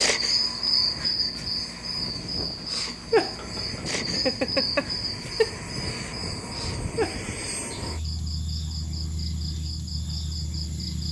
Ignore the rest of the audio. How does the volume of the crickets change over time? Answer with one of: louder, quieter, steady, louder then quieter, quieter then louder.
quieter.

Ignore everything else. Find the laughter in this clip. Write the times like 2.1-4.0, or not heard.
4.1-6.2.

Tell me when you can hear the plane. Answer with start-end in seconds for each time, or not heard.
0.1-11.0.